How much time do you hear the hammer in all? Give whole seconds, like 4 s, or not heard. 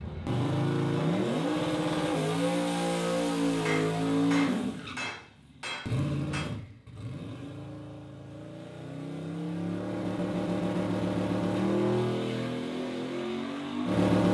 3 s.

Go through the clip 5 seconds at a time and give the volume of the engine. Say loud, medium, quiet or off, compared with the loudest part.
loud, medium, loud.